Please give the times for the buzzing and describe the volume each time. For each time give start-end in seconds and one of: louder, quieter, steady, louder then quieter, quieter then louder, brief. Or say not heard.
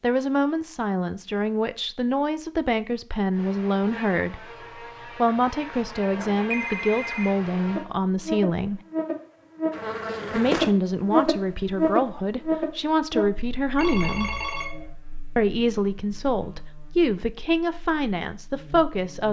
3.3-19.2 louder then quieter.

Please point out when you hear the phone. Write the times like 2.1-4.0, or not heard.
6.1-7.3, 13.8-14.9.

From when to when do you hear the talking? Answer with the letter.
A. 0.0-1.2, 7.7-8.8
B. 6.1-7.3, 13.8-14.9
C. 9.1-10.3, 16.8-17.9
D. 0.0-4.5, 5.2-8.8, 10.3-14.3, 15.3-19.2
D.